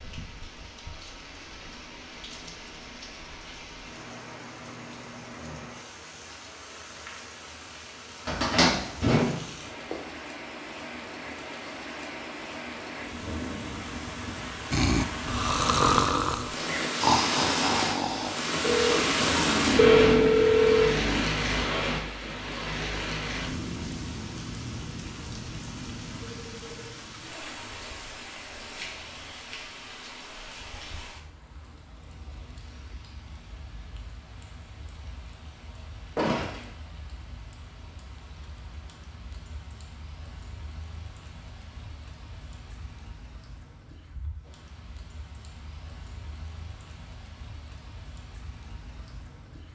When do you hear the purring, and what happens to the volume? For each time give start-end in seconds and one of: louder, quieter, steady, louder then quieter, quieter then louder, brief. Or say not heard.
not heard.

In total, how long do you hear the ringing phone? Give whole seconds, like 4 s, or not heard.
2 s.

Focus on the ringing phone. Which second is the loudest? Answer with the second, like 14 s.
20 s.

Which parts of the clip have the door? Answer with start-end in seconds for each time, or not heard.
8.2-9.9, 36.1-36.7.